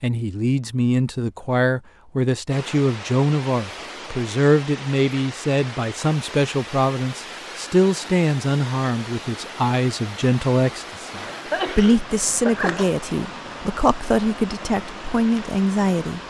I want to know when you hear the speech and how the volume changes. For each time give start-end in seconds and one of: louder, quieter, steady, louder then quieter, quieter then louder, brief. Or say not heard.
0.0-16.2 steady.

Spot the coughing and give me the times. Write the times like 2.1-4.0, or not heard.
11.2-12.9.